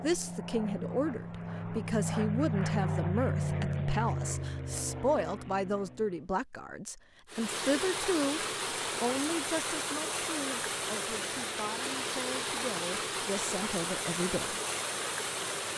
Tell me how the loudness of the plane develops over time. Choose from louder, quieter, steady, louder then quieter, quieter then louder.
louder then quieter.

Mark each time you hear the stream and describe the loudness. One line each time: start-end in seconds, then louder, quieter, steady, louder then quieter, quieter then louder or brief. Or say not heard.
7.2-15.7 steady.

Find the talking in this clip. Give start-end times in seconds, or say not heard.
0.0-14.6.